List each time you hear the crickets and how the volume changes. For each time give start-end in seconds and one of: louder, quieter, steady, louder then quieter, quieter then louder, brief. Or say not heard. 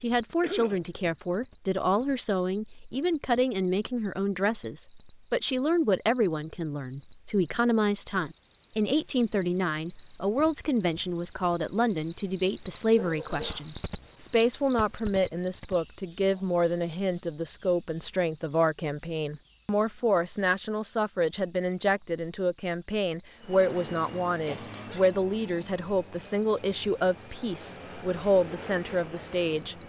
0.0-29.8 louder then quieter.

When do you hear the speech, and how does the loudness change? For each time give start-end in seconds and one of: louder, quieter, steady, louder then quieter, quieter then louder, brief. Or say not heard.
0.0-29.8 steady.